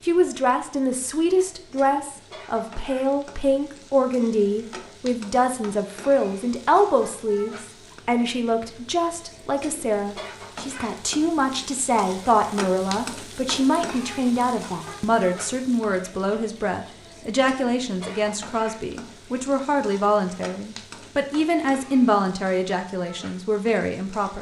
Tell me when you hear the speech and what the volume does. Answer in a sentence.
You can hear the speech from 0.0 to 24.3 s, at a steady volume.